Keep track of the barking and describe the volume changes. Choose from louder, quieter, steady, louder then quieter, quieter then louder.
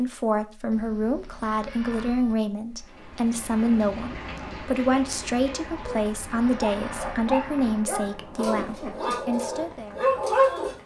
louder.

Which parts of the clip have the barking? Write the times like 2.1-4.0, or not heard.
5.7-10.8.